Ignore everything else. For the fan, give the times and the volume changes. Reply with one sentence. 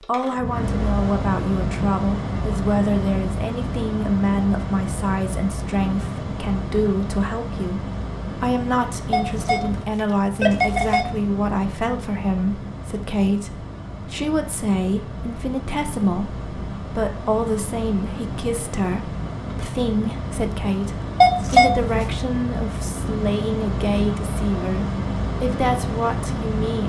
The fan can be heard from 0.0 to 26.8 s, getting quieter then louder.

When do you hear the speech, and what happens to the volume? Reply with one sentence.
You can hear the speech from 0.0 to 26.8 s, at a steady volume.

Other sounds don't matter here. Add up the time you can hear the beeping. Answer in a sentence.
You can hear the beeping for 3 seconds altogether.